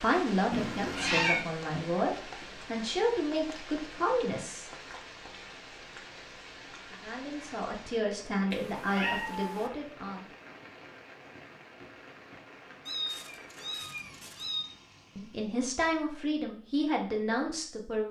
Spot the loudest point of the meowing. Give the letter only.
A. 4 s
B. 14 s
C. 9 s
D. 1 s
D.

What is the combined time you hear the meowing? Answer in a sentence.
The meowing can be heard for 4 seconds in total.